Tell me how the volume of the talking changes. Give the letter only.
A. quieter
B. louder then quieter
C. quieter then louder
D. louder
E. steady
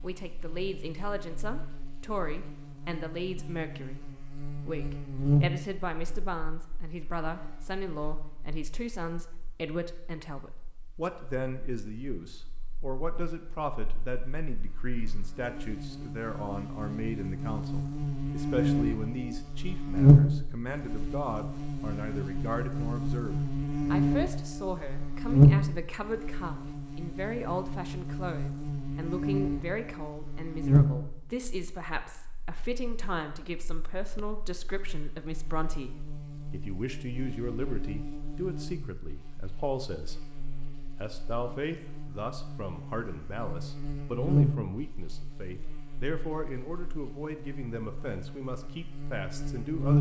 E.